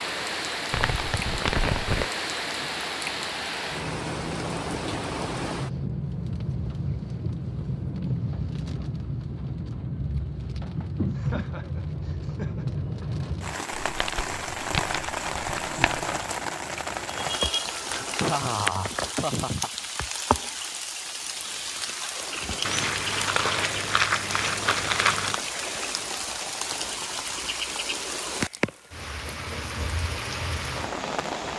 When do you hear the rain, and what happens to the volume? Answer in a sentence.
The rain can be heard from 0.0 to 31.5 s, at a steady volume.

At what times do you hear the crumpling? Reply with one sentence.
The crumpling can be heard from 0.7 to 2.1 s, from 13.8 to 16.2 s and from 22.6 to 25.4 s.